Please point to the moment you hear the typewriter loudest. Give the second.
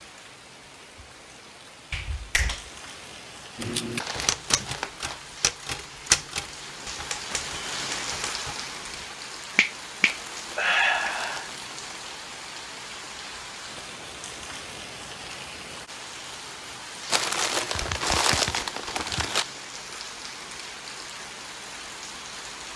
6 s.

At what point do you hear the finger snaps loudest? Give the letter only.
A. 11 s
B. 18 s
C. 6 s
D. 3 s
A.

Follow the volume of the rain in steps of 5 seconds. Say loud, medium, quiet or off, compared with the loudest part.
medium, loud, loud, loud, loud.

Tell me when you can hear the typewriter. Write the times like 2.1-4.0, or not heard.
3.5-9.2.